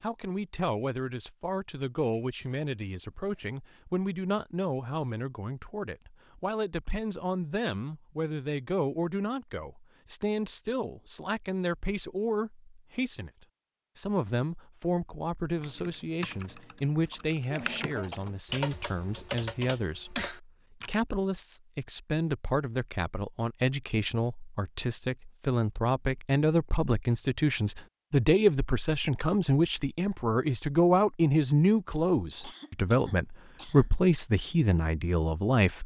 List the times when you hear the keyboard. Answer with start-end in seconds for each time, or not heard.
15.6-21.0.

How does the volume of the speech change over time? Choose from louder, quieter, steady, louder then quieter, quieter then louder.
louder.